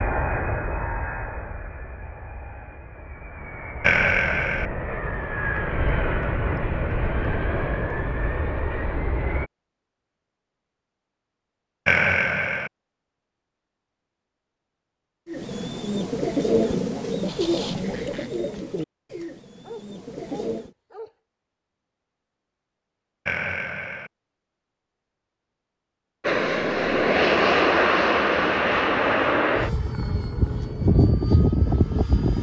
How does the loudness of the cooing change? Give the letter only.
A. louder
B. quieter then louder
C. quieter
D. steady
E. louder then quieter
C.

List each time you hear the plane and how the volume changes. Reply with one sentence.
You can hear the plane from 0.0 to 9.5 s, getting quieter then louder; and from 26.2 to 32.3 s, getting quieter then louder.